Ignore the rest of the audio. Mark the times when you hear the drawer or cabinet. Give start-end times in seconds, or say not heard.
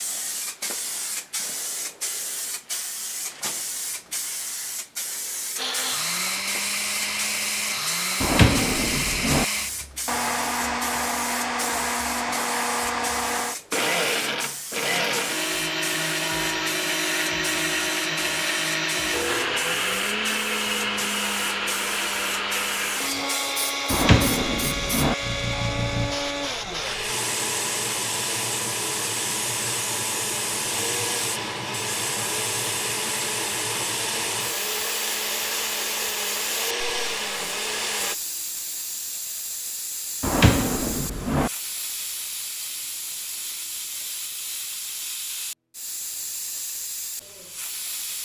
8.2-9.4, 23.9-25.1, 40.2-41.5.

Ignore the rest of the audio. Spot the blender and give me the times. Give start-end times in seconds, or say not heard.
5.5-38.1.